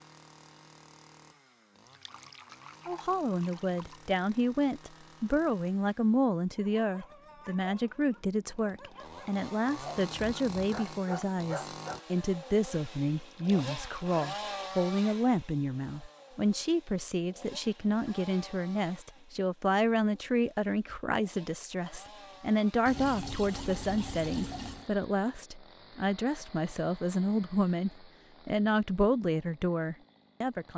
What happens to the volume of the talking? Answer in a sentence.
The loudness of the talking stays about the same.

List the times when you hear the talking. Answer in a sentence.
The talking can be heard from 2.9 to 30.7 s.